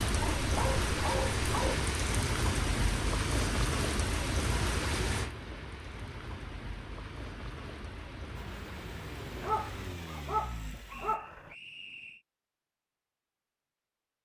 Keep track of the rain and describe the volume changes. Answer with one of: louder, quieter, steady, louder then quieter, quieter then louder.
quieter.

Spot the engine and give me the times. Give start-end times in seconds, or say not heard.
8.3-11.2.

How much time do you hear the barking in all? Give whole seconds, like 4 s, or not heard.
4 s.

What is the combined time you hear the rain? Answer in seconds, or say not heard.
10 s.